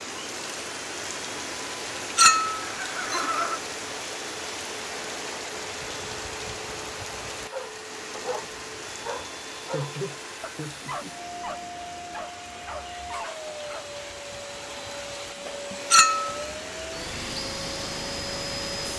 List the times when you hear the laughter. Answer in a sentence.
You can hear the laughter from 2.6 to 3.6 s and from 9.7 to 11.2 s.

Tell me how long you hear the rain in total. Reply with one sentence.
You can hear the rain for 19 seconds altogether.